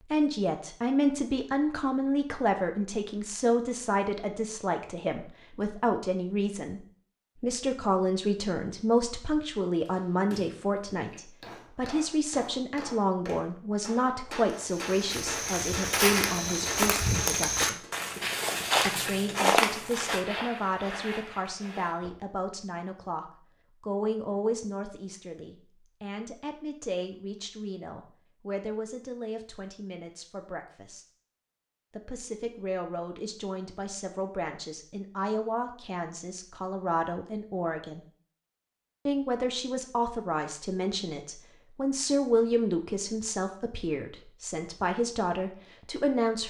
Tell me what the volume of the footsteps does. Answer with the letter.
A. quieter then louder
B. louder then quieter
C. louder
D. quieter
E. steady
D.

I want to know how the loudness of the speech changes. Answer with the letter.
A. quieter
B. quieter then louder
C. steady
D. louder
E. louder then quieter
B.